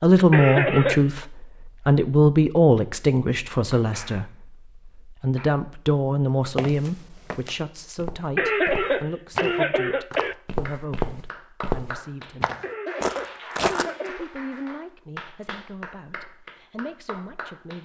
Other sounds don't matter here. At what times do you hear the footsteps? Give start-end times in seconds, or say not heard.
6.5-14.1.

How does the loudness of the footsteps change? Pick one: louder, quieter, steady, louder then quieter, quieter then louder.
louder.